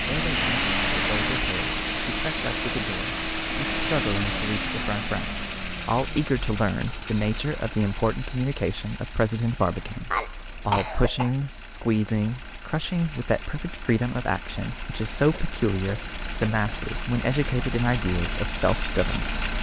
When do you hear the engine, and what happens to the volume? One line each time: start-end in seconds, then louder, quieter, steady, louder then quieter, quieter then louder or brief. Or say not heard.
0.0-19.5 quieter then louder.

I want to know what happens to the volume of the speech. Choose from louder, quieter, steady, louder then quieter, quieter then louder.
louder.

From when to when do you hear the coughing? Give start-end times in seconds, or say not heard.
9.7-11.3.